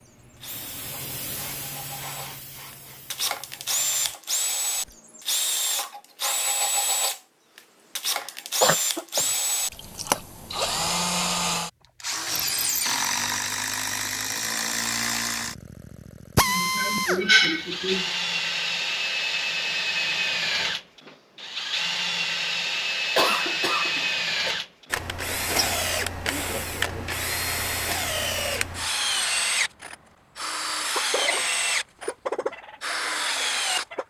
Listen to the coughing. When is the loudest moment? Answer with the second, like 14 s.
17 s.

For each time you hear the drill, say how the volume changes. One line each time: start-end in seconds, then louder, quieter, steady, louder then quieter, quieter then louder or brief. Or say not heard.
0.0-34.0 steady.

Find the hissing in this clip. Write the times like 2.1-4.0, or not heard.
0.0-4.2.